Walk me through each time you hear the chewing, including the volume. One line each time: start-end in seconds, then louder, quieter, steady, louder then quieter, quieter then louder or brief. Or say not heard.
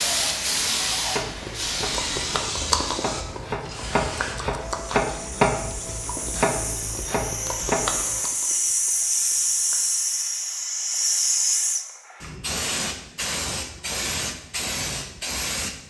1.2-9.8 quieter.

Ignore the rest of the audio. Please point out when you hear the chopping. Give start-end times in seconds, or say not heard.
0.8-8.2.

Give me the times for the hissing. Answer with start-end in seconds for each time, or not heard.
0.0-15.8.